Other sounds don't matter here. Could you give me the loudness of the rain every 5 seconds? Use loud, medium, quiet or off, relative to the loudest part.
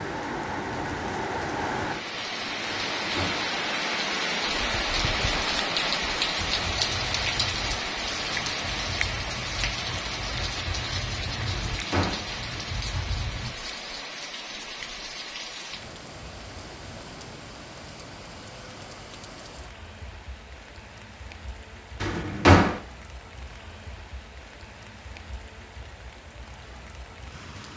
loud, loud, medium, quiet, quiet, quiet.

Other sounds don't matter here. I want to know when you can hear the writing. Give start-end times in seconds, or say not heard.
6.3-13.6.